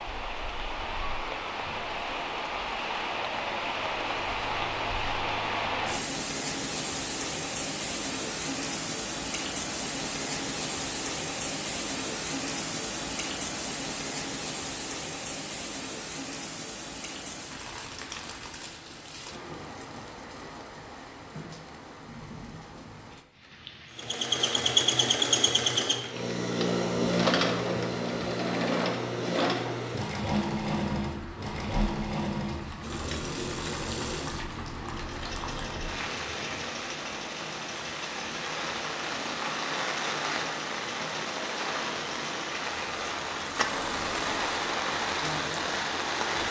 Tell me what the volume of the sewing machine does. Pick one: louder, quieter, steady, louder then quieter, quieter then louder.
quieter.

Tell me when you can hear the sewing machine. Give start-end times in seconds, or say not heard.
23.9-46.4.